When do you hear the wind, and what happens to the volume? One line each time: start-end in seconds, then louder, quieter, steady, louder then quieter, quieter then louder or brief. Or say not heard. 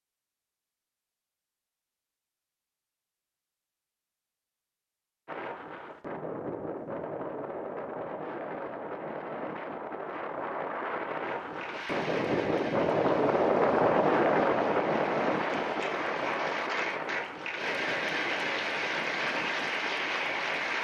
5.2-20.7 louder then quieter.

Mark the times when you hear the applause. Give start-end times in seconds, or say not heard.
11.2-20.7.